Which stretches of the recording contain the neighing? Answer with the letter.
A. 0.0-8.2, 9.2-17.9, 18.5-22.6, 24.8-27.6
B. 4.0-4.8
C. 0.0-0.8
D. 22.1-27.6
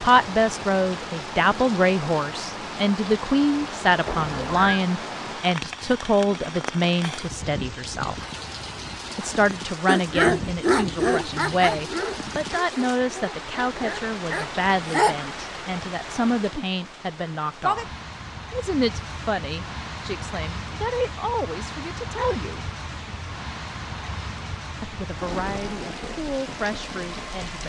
B.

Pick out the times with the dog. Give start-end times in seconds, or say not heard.
9.8-15.3.